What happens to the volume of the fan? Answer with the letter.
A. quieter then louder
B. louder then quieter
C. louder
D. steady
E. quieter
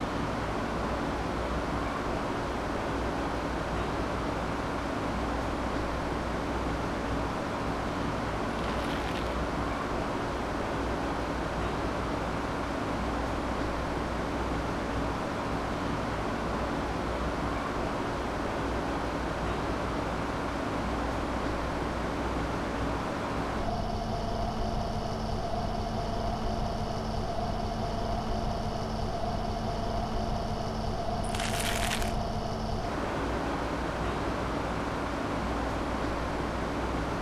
D.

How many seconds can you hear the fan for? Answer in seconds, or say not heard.
37 s.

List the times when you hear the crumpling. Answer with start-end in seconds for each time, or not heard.
8.5-9.4, 31.2-32.2.